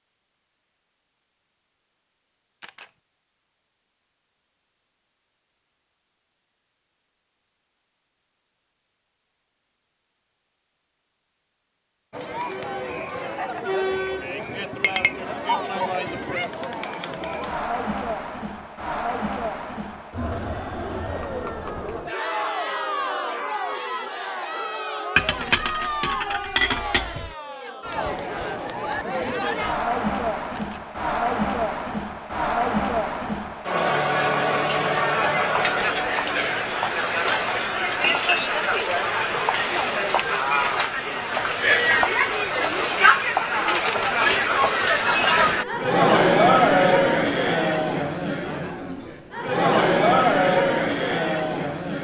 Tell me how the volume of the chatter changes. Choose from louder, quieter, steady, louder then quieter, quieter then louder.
louder.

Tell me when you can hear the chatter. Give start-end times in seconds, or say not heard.
12.1-51.9.